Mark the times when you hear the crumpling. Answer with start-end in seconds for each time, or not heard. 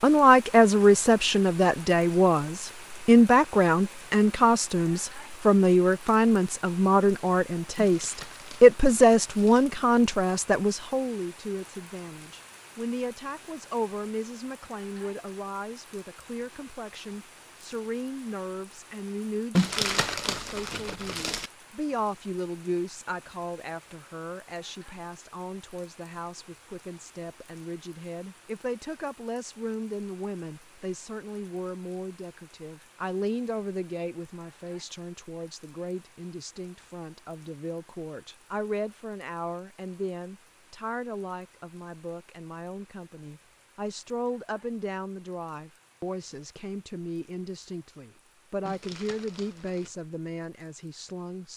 7.8-9.7, 19.6-21.5, 48.6-49.9.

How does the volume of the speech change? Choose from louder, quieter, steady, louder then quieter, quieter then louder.
quieter.